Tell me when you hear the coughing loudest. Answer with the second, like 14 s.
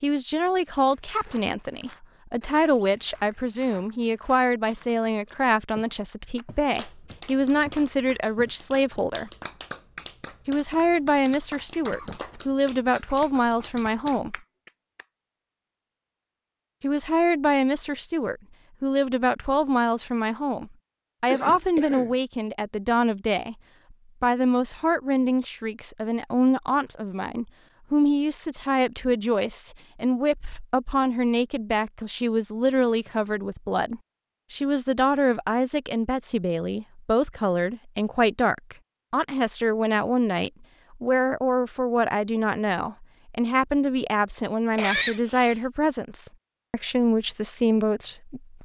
45 s.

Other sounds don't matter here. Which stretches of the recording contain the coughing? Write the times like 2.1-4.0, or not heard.
11.9-12.4, 21.3-22.1, 44.8-45.6.